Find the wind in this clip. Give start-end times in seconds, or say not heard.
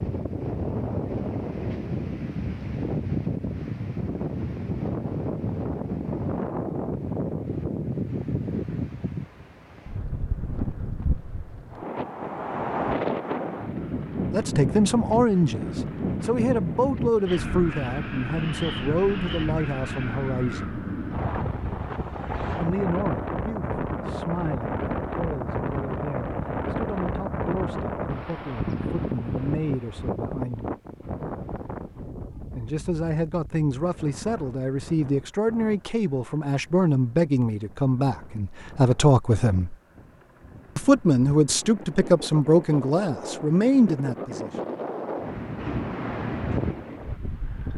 0.0-47.7.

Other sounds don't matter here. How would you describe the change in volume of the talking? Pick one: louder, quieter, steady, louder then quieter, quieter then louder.
quieter then louder.